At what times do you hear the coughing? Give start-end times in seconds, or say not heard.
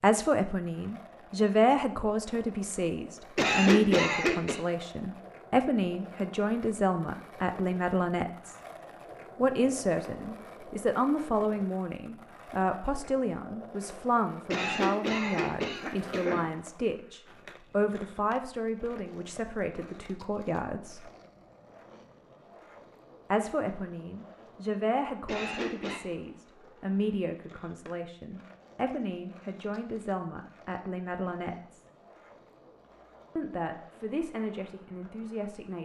3.4-4.6, 14.5-16.4, 25.2-26.0.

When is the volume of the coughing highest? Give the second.
4 s.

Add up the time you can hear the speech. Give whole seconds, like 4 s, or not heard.
31 s.